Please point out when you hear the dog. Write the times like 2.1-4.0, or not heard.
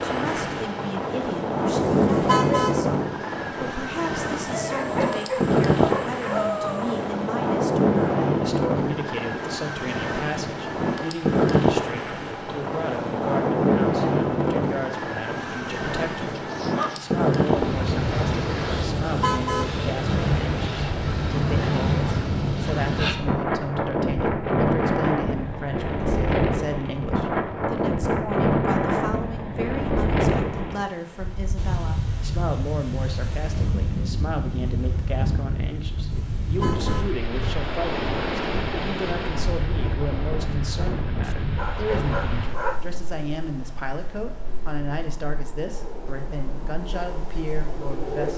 4.5-7.0, 16.4-17.1, 41.2-42.9.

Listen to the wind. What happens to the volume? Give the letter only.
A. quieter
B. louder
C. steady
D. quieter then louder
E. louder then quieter
A.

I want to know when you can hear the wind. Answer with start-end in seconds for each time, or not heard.
0.0-48.3.